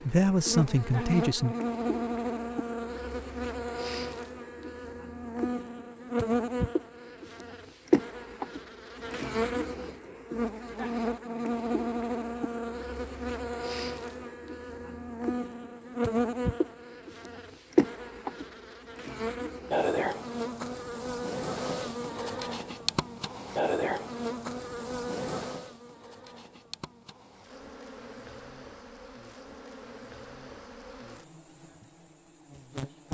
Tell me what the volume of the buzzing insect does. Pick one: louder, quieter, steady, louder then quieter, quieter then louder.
quieter.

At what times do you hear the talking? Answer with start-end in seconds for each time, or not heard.
0.0-1.6.